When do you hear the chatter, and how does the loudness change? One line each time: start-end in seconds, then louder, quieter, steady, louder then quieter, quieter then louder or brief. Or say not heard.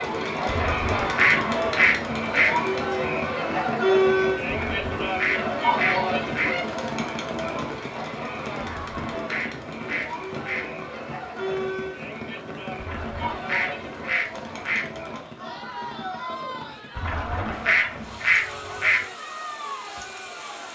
0.0-20.6 quieter.